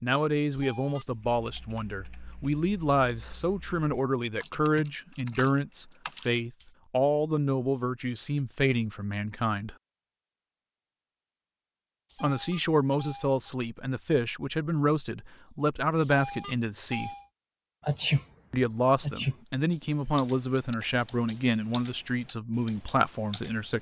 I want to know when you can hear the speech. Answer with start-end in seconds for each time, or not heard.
0.0-9.8, 12.2-17.1, 18.5-23.7.